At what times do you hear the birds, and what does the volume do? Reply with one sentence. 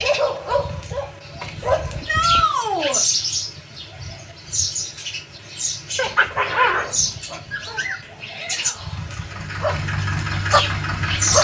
The birds can be heard from 0.0 to 11.4 s, getting louder then quieter.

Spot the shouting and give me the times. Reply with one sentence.
You can hear the shouting from 2.0 to 3.0 s and from 8.2 to 9.1 s.